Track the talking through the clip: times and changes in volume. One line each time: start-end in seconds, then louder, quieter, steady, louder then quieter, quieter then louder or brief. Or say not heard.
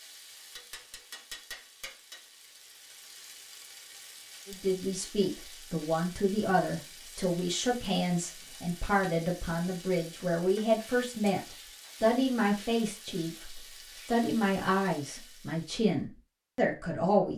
4.5-17.3 steady.